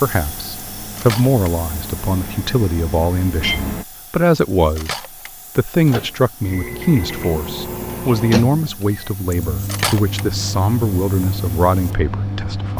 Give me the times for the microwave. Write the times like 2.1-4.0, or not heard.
0.1-3.9, 5.8-12.7.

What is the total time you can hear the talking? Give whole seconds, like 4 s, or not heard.
12 s.